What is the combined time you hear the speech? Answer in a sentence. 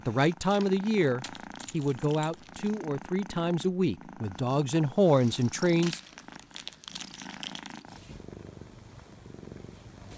You can hear the speech for 6 seconds altogether.